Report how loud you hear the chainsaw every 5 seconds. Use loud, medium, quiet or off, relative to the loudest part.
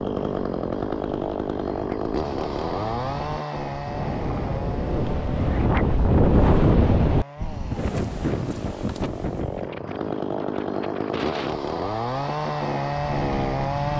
loud, medium, loud.